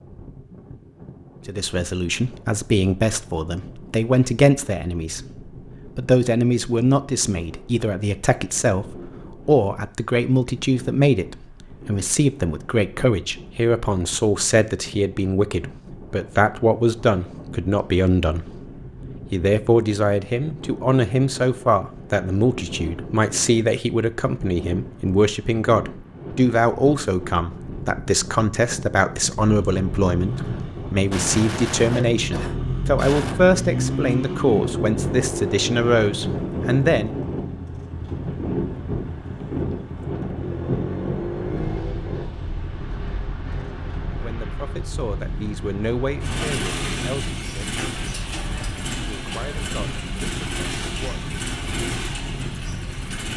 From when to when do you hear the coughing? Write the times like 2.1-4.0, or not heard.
31.1-33.4.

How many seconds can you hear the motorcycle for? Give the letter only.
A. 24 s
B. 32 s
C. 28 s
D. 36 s
A.